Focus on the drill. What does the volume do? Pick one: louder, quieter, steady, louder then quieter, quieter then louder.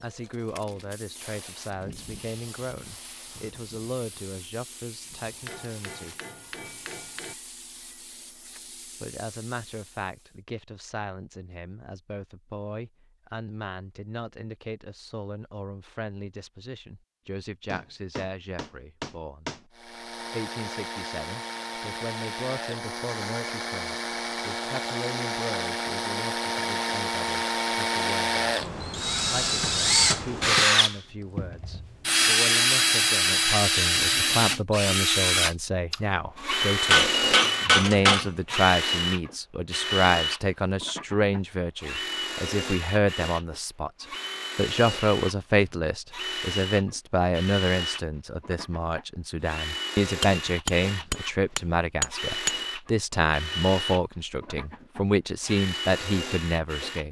louder then quieter.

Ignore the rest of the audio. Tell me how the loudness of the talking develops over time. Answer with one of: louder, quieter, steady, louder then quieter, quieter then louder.
louder.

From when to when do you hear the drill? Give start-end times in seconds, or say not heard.
19.8-57.0.